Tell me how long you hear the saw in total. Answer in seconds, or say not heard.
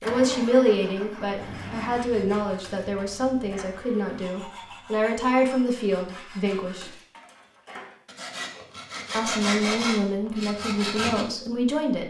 10 s.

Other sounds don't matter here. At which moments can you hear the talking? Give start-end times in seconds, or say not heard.
0.0-6.9, 9.1-12.0.